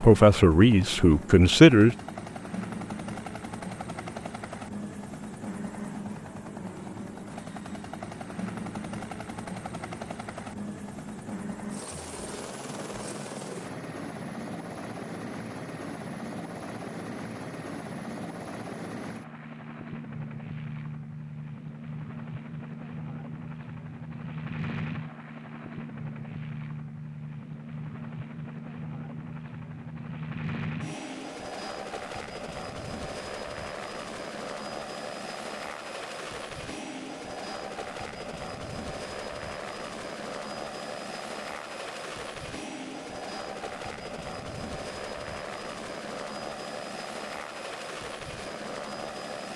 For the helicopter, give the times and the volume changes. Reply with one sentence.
The helicopter can be heard from 0.0 to 49.5 s, at a steady volume.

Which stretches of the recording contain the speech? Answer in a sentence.
You can hear the speech from 0.0 to 1.9 s.